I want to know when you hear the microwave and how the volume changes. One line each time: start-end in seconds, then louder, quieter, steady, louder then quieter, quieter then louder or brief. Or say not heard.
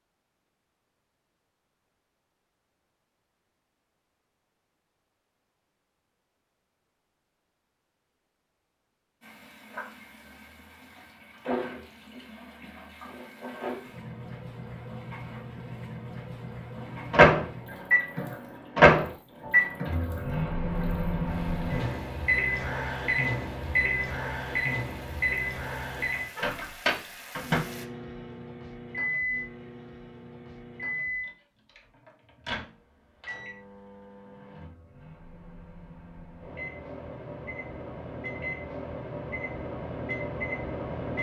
17.1-41.1 quieter then louder.